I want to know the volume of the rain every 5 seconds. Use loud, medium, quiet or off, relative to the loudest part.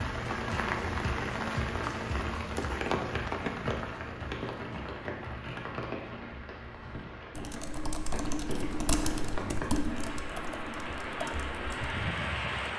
loud, medium, loud.